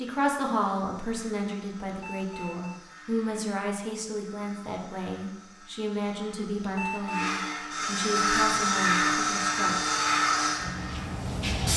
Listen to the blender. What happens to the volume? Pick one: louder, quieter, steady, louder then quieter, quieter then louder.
louder.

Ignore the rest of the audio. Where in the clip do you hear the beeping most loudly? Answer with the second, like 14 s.
7 s.